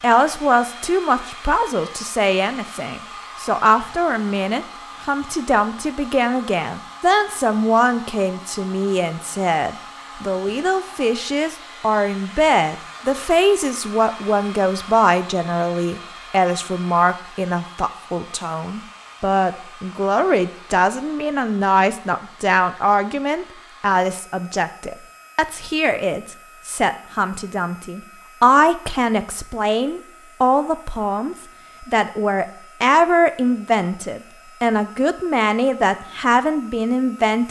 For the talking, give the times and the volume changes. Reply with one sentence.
The talking can be heard from 0.0 to 37.4 s, at a steady volume.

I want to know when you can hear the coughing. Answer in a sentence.
You can't hear the coughing here.